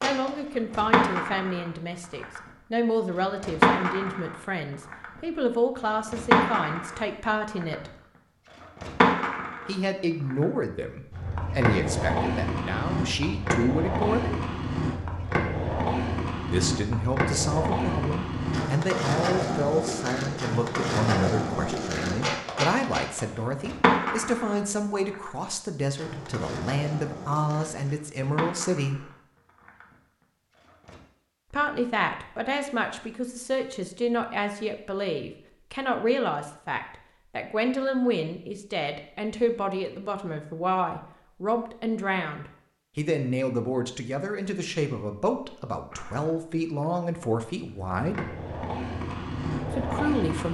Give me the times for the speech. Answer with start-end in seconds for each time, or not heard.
0.0-7.9, 9.7-14.4, 16.5-29.1, 31.5-48.4, 49.7-50.5.